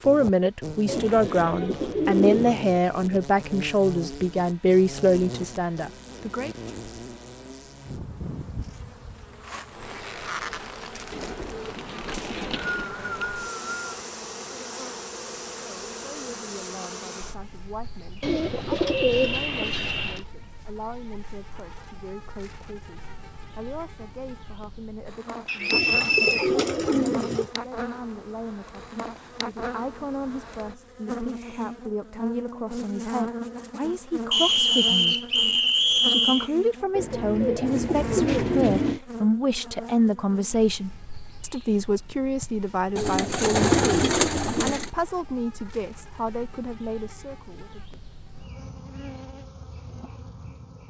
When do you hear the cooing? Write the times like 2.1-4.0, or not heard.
0.8-2.5, 11.1-12.9, 18.2-20.2, 25.7-27.5, 37.0-39.0, 43.0-44.9.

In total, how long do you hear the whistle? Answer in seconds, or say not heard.
5 s.